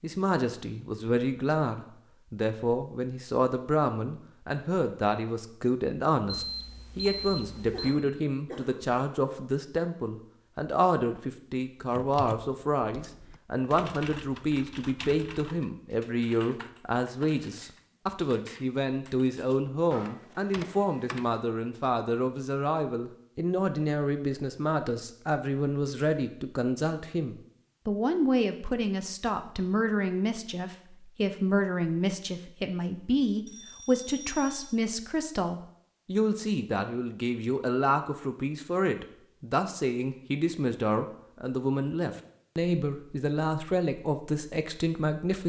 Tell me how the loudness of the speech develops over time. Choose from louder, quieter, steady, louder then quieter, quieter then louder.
steady.